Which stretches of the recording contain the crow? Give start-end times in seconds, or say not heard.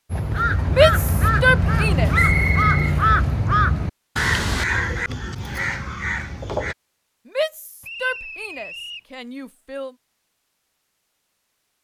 0.1-6.8.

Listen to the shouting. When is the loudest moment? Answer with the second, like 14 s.
1 s.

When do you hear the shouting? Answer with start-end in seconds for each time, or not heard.
0.7-2.1, 7.2-9.9.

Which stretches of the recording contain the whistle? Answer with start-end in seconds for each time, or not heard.
2.1-3.0, 7.8-9.0.